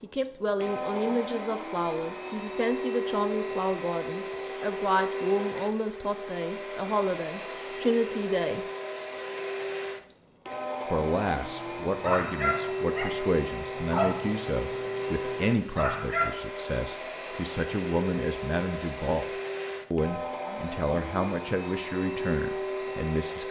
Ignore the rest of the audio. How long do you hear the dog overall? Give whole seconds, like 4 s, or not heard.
5 s.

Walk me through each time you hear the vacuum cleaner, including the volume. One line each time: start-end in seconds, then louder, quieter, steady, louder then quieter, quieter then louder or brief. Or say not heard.
0.0-23.4 steady.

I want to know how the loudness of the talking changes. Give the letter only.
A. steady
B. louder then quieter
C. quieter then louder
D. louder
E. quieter
A.